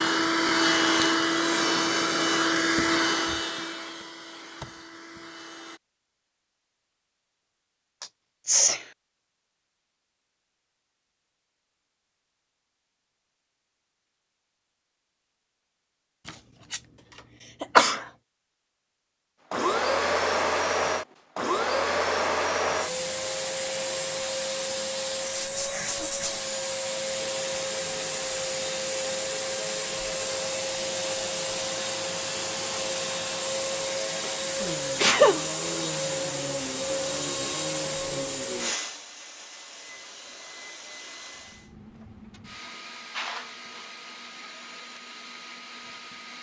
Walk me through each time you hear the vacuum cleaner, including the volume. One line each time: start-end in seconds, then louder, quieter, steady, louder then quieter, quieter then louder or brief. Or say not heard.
0.0-5.8 quieter
19.5-46.3 quieter.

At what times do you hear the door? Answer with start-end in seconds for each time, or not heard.
not heard.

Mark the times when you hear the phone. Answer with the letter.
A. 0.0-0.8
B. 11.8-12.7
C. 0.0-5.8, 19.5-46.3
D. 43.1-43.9
D.